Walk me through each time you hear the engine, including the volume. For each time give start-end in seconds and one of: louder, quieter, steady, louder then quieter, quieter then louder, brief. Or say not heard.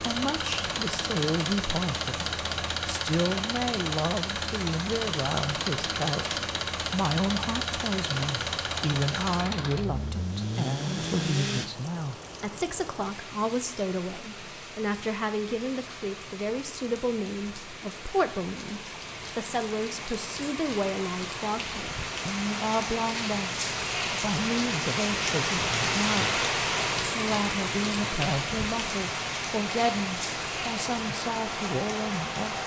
0.0-11.7 steady
29.8-32.6 brief.